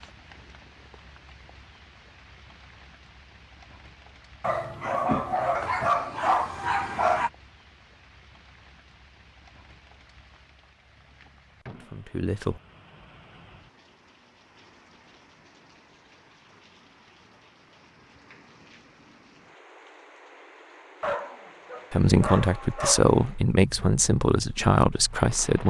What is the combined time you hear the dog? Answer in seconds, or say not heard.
5 s.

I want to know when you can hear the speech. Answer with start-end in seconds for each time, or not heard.
11.7-12.6, 21.9-25.6.